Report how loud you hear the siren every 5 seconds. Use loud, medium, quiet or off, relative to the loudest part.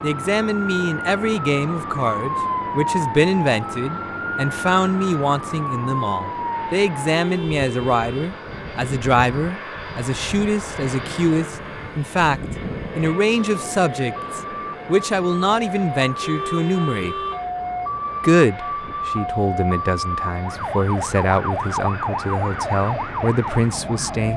loud, loud, medium, loud, loud.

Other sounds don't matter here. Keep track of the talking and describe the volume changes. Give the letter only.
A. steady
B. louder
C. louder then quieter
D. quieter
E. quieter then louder
A.